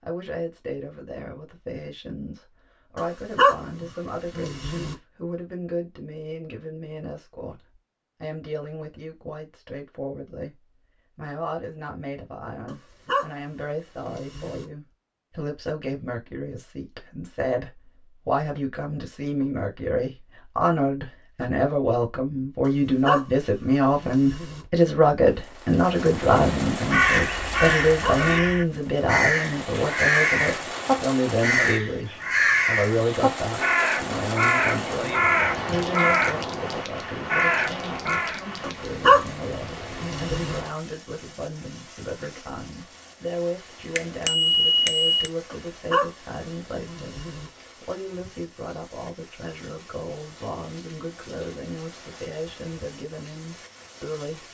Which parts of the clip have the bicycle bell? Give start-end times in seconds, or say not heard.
44.0-45.3.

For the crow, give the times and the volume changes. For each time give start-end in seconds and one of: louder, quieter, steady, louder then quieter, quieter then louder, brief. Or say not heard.
26.9-38.5 steady.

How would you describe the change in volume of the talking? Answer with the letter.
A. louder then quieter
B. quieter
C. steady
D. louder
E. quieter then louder
A.